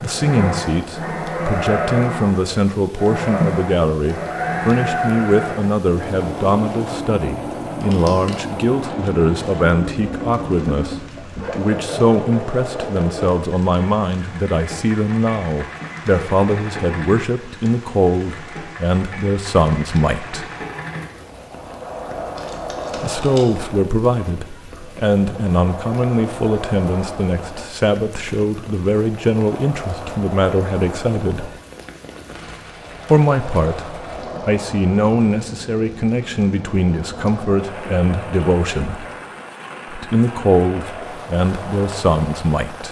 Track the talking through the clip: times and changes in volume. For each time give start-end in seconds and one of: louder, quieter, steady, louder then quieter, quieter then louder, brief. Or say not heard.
0.0-20.4 steady
22.9-31.5 steady
33.1-39.0 steady
39.9-42.8 brief.